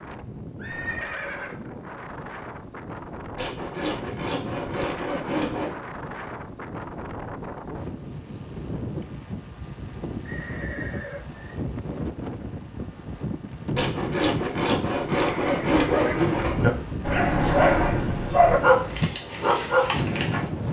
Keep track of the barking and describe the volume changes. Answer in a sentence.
The volume of the barking stays about the same.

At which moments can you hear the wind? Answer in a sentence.
The wind can be heard from 0.0 to 20.6 s.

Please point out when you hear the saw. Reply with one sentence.
You can hear the saw from 3.4 to 5.8 s and from 13.8 to 16.6 s.